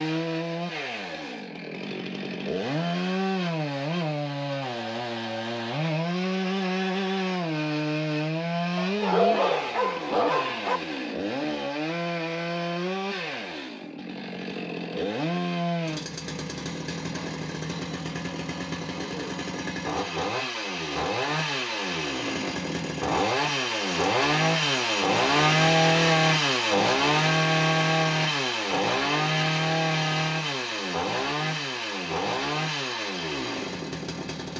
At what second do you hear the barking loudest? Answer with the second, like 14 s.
9 s.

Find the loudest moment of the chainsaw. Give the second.
26 s.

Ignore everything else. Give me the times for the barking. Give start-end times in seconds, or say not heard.
8.8-10.8.